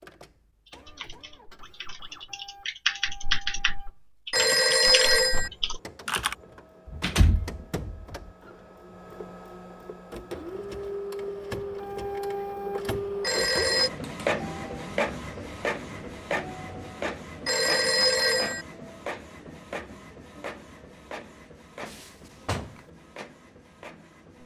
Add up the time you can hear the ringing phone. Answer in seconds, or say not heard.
3 s.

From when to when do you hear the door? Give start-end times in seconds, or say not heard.
6.8-8.2, 21.9-22.9.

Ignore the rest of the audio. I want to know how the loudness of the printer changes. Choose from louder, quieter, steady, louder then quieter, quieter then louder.
louder then quieter.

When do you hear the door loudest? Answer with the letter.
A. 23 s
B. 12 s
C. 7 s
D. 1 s
C.